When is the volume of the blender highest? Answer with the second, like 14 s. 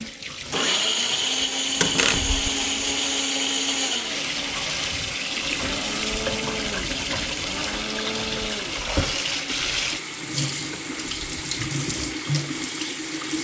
1 s.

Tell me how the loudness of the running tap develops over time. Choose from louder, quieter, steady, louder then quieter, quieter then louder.
louder.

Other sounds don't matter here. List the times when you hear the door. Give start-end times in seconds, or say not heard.
1.8-2.5, 10.7-11.2.